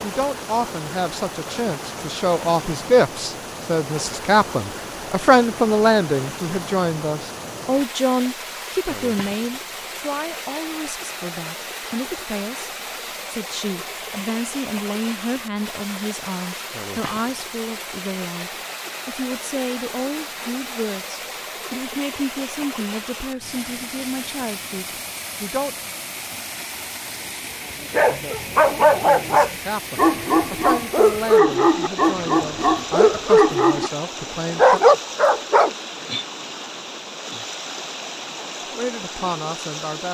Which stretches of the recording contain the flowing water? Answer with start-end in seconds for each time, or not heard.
0.0-40.0.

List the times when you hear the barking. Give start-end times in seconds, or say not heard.
27.9-35.8.